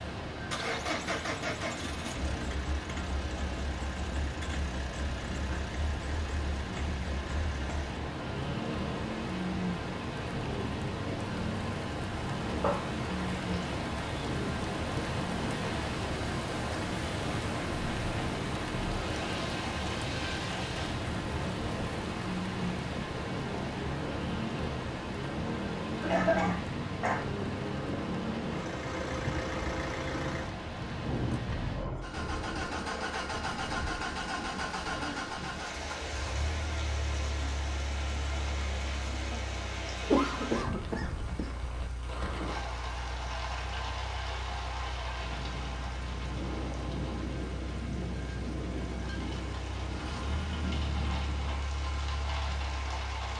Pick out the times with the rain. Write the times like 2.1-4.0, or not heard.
0.0-53.3.